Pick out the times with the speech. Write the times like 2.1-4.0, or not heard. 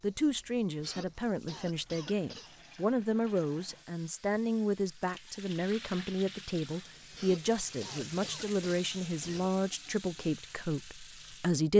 0.0-11.7.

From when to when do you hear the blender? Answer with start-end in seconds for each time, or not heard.
not heard.